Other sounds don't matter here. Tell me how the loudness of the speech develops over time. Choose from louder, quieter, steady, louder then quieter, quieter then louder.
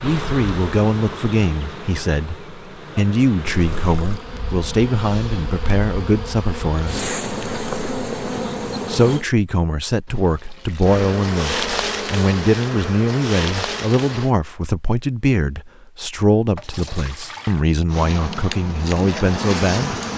steady.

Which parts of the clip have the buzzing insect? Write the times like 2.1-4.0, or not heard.
0.0-9.2, 10.8-14.3, 17.9-20.1.